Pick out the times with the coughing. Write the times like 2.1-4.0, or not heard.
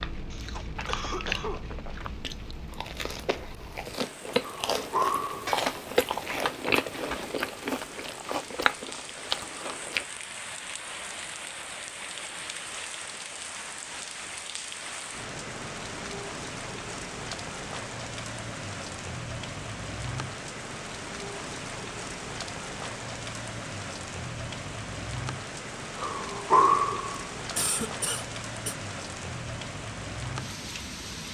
0.3-1.7, 27.6-28.8.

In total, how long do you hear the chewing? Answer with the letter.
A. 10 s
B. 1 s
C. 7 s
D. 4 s
A.